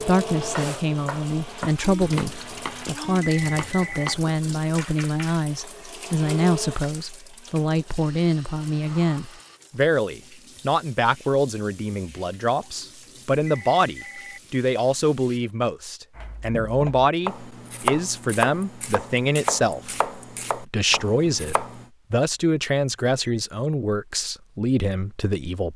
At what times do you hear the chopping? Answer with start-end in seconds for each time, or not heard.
0.1-5.3, 16.1-21.9.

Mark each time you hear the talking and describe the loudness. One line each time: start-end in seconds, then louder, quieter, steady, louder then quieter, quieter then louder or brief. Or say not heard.
0.0-25.7 steady.